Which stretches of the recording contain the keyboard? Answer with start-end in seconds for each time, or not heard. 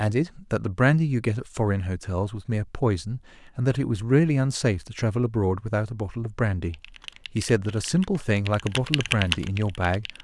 6.7-10.2.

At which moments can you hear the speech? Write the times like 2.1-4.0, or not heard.
0.0-6.8, 7.3-10.1.